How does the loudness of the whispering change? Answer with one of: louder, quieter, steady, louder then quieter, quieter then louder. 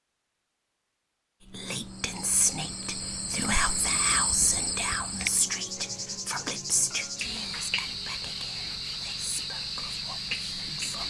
quieter.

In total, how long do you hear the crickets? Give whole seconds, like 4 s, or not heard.
9 s.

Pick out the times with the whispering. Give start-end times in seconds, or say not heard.
1.5-11.0.